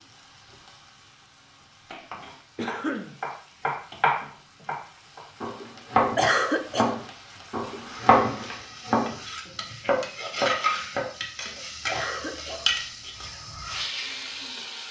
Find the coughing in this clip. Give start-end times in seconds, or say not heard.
2.5-3.1, 6.2-7.0, 11.8-12.7.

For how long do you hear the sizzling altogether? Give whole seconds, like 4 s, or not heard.
15 s.